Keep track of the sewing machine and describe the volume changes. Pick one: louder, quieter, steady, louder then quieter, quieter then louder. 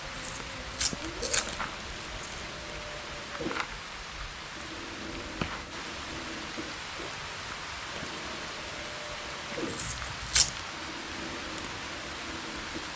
steady.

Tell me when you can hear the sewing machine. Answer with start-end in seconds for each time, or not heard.
0.0-12.9.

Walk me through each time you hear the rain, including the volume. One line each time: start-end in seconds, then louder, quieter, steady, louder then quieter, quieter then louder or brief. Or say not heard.
0.0-12.9 steady.